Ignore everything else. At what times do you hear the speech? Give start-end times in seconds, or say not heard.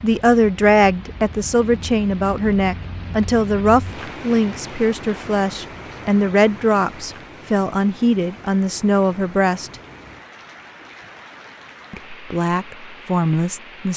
0.0-9.7, 11.9-13.9.